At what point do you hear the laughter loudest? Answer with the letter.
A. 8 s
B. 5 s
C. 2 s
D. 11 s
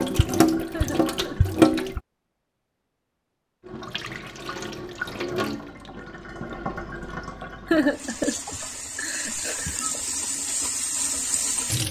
A.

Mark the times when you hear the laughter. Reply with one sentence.
The laughter can be heard from 0.7 to 1.6 s and from 7.7 to 9.9 s.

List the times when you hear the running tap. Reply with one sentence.
The running tap can be heard from 0.0 to 2.0 s and from 3.6 to 11.8 s.